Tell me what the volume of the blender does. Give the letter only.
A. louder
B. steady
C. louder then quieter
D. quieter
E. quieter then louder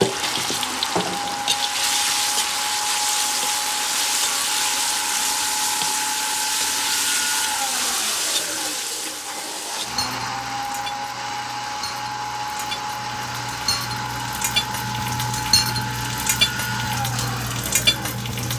B.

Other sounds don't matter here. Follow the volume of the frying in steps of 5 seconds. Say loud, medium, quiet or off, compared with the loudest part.
loud, loud, medium, loud.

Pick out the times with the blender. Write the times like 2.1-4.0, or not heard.
0.0-18.5.